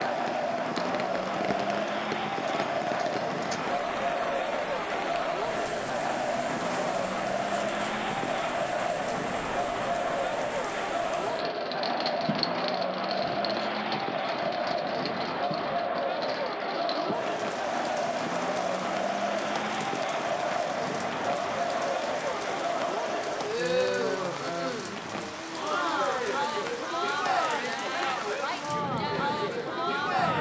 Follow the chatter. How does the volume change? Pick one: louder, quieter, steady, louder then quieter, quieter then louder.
steady.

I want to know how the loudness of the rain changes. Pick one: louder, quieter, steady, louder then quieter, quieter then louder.
steady.